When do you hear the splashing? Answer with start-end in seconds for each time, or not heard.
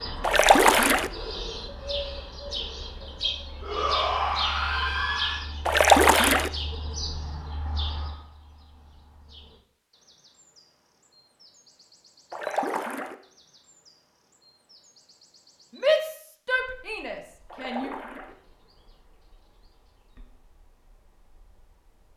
0.2-1.1, 5.7-6.5, 12.3-13.2, 17.5-18.4.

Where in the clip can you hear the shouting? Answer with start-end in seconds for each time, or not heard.
3.6-5.5, 15.8-17.9.